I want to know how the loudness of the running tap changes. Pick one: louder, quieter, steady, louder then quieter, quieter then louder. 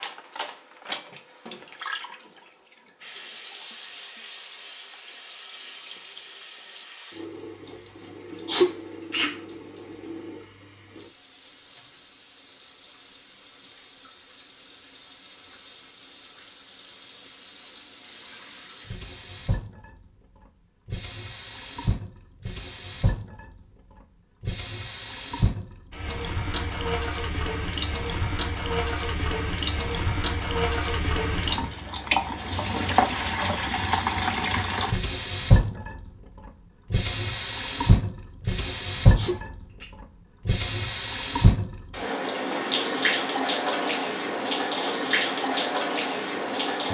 louder.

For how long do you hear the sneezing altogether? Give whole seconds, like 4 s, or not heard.
2 s.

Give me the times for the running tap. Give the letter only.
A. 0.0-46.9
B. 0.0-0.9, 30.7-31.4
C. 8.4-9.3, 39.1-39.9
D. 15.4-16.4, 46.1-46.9
A.